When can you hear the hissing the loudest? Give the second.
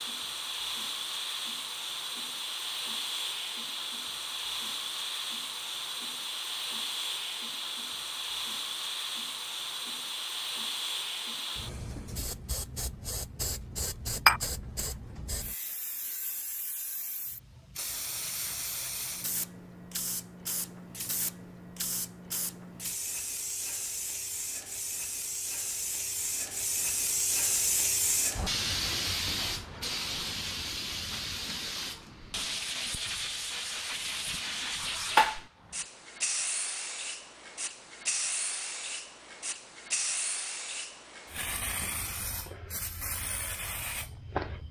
28 s.